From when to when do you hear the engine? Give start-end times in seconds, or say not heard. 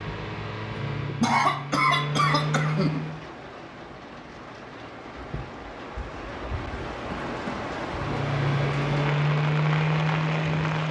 0.0-3.3, 7.8-10.8.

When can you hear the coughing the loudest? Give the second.
1 s.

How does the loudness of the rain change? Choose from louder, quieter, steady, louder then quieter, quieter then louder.
louder.